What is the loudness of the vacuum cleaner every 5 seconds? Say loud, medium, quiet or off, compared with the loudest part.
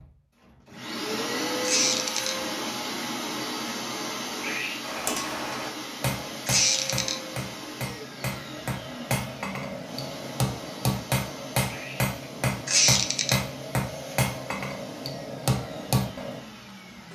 loud, medium, medium, quiet.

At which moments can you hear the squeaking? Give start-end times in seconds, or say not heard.
1.6-2.4, 6.5-7.2, 12.7-13.3.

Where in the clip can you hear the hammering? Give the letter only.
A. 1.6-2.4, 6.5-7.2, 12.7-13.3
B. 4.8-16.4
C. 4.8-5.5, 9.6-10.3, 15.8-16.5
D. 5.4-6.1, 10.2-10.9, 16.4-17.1
B.